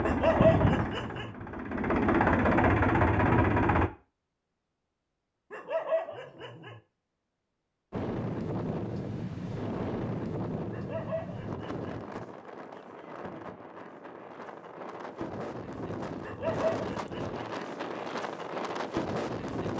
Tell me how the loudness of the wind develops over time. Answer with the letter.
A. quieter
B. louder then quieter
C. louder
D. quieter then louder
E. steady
D.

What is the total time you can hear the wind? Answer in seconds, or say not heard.
12 s.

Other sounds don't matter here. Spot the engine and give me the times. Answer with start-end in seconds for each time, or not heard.
0.0-3.9.